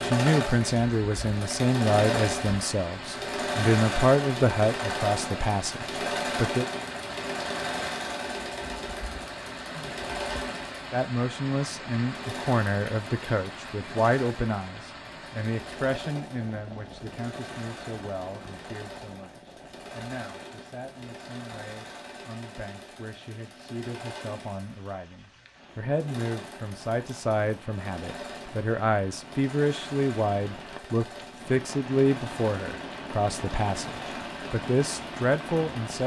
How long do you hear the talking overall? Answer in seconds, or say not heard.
32 s.